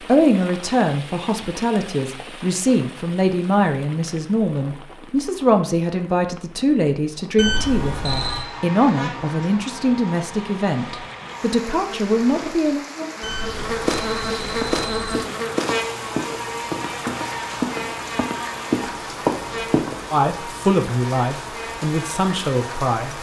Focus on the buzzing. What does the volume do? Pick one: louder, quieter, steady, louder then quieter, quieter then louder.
louder then quieter.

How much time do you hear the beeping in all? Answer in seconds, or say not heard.
3 s.